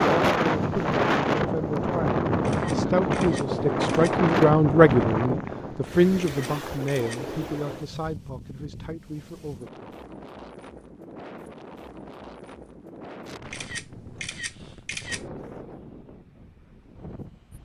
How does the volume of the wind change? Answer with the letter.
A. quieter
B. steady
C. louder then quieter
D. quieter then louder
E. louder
A.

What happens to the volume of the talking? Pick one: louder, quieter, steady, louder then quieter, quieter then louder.
louder then quieter.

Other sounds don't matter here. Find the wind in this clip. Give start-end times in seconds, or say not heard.
0.0-17.6.